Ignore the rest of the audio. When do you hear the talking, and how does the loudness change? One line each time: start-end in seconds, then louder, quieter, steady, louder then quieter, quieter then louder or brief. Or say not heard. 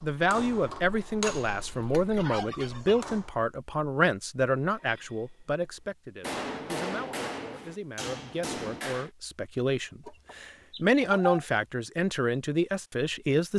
0.0-13.5 quieter then louder.